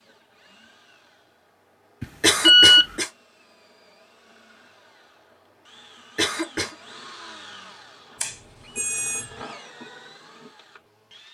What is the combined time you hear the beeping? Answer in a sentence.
The beeping can be heard for 2 seconds in total.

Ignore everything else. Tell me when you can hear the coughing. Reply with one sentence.
You can hear the coughing from 2.2 to 3.1 s and from 6.2 to 6.8 s.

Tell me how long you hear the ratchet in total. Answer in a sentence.
The ratchet can't be heard in this clip.